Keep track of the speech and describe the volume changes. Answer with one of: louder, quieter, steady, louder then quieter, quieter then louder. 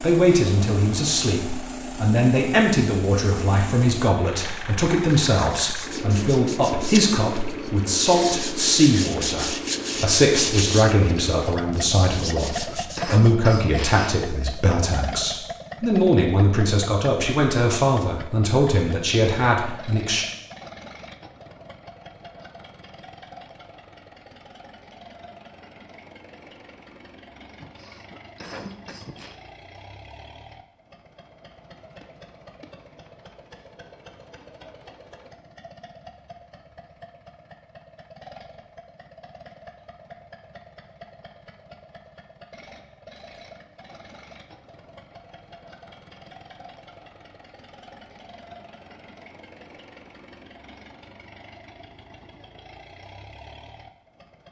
steady.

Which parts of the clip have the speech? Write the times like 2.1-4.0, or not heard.
0.0-20.2.